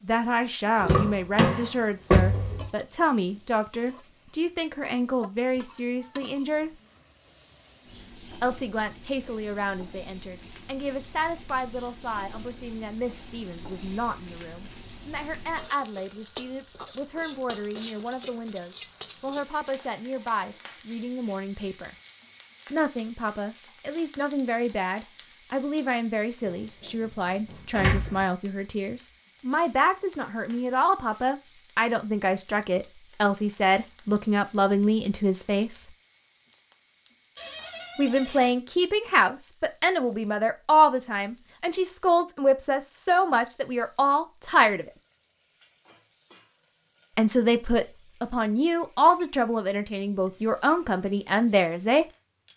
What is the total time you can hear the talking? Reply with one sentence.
The talking can be heard for 45 seconds in total.